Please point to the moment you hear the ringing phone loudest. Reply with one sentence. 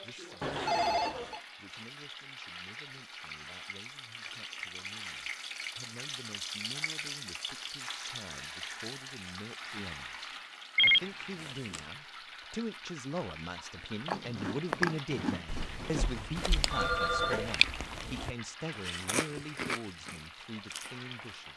The volume of the ringing phone peaks at 11 seconds.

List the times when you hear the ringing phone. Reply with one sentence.
The ringing phone can be heard from 0.4 to 1.4 s, from 10.8 to 11.8 s and from 15.4 to 17.6 s.